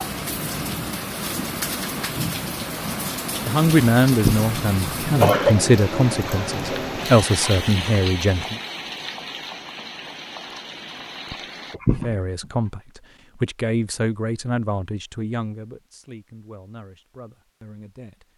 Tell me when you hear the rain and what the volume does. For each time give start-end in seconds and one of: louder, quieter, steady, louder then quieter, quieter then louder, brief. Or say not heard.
0.0-11.8 quieter.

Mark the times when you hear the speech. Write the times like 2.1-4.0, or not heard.
3.4-8.6, 12.0-18.3.